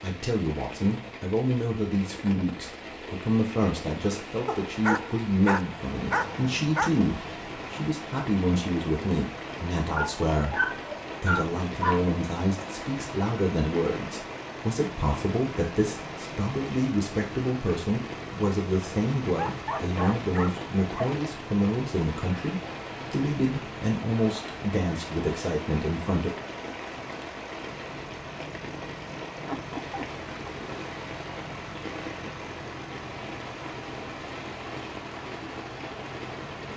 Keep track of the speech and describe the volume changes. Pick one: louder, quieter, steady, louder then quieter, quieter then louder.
steady.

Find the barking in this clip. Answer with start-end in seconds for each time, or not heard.
4.5-6.9, 9.9-12.0, 19.3-21.2, 29.4-30.8.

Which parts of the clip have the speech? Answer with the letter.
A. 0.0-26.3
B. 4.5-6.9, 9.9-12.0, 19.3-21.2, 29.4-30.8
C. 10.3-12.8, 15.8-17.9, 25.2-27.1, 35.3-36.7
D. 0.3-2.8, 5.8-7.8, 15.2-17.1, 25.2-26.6
A.